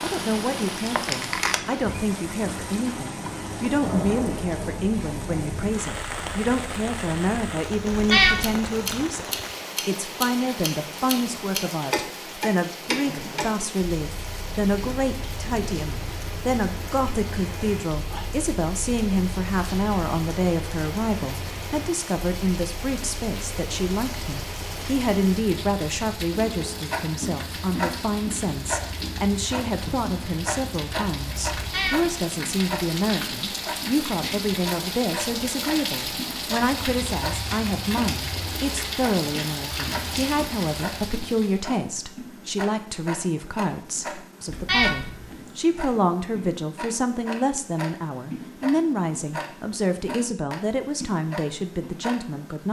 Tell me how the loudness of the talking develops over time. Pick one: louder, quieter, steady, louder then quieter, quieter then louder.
steady.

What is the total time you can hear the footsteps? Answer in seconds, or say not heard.
not heard.